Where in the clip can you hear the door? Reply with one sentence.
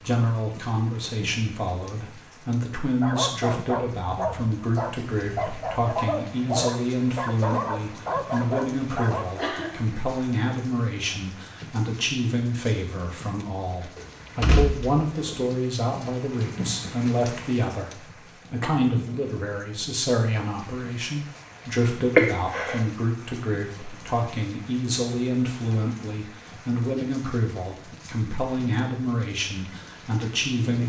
The door can be heard from 13.9 to 15.3 s.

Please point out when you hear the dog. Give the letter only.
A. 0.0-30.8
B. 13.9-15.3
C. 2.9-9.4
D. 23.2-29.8
C.